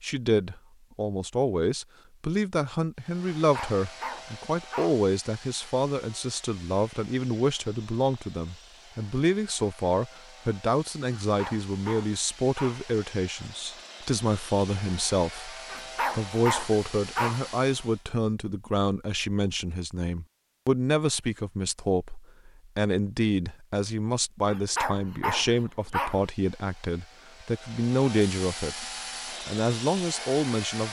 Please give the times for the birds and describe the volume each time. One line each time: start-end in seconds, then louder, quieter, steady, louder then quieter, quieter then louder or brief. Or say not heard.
not heard.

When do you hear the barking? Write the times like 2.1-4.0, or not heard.
3.4-5.0, 11.1-12.9, 15.7-17.5, 24.4-26.3.